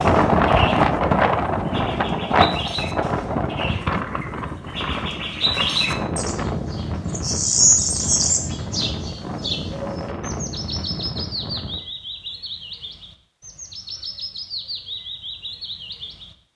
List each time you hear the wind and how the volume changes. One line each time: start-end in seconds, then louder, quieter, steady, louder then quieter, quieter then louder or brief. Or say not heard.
0.0-11.8 quieter.